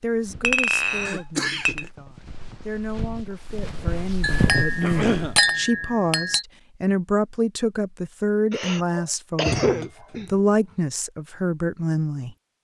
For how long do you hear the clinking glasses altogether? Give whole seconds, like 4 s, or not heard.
5 s.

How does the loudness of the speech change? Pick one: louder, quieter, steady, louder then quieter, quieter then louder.
louder.